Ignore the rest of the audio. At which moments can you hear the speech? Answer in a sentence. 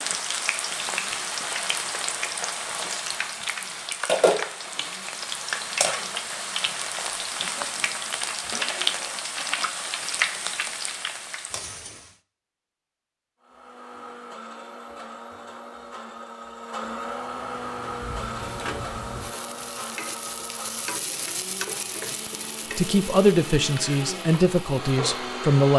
You can hear the speech from 22.8 to 25.7 s.